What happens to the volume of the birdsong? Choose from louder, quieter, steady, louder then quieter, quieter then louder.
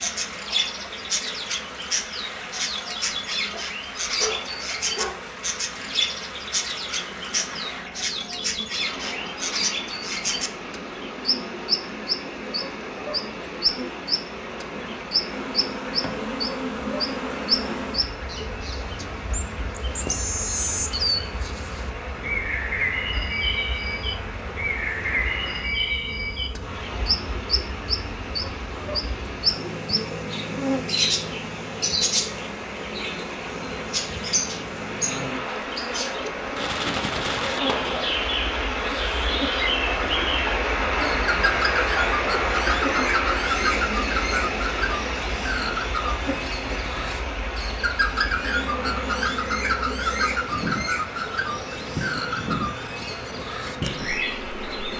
steady.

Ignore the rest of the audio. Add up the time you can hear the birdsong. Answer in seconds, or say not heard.
55 s.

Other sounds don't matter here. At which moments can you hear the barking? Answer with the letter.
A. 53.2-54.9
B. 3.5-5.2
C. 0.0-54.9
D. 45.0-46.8
B.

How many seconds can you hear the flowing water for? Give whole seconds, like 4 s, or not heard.
55 s.